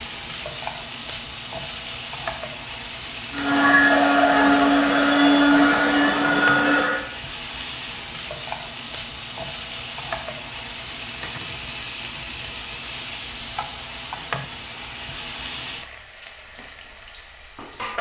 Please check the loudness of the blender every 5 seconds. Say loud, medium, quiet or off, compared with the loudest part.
loud, loud, off, off.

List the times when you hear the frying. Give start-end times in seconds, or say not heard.
0.0-17.9.